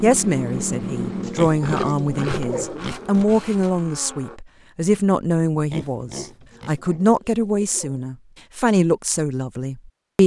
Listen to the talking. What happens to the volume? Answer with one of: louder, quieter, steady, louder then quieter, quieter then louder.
steady.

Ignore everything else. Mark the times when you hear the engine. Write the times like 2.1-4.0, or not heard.
0.0-4.4.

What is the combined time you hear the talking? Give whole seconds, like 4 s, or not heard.
10 s.